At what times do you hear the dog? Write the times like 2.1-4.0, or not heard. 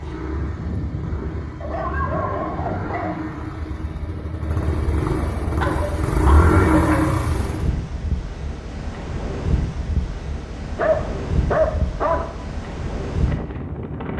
1.6-3.1, 5.5-7.1, 10.8-12.3.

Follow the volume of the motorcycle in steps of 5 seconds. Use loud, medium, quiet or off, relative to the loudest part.
medium, loud, off.